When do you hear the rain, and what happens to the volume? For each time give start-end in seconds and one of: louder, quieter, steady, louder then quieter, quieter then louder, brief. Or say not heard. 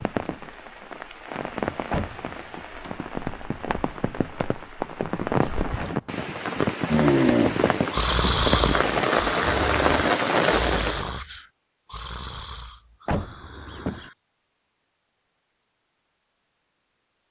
0.0-11.1 louder.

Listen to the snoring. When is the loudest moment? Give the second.
7 s.